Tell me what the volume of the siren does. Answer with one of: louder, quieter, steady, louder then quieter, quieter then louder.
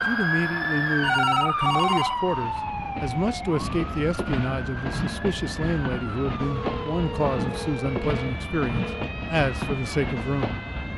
quieter.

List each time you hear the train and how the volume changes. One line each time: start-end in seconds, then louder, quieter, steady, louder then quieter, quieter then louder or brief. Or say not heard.
0.0-10.9 louder.